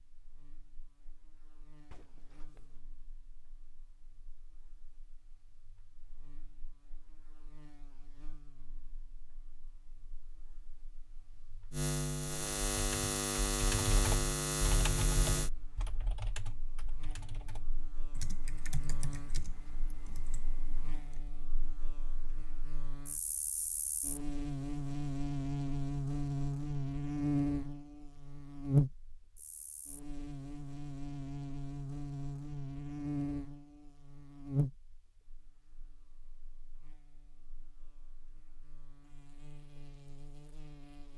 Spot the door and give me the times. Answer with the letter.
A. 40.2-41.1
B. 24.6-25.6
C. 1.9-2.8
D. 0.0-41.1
C.